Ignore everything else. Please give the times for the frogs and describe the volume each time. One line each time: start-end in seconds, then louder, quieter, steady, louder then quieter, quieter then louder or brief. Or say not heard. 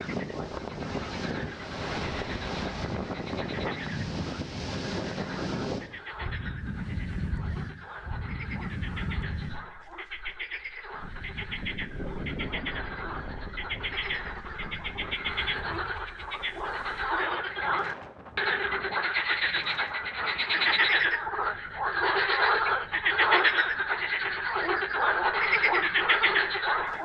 0.0-27.0 louder.